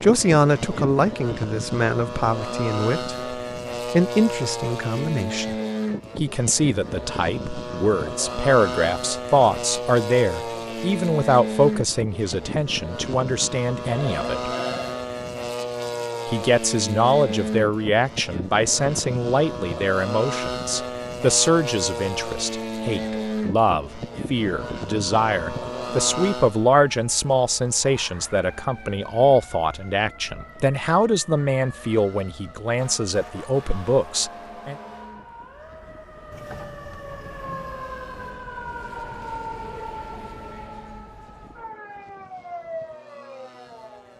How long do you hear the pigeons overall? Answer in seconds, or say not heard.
not heard.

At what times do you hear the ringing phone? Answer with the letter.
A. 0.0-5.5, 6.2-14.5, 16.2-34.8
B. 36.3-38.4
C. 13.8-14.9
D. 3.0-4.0
C.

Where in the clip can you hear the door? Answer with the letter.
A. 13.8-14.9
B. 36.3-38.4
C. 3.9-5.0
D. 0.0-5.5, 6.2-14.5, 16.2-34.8
B.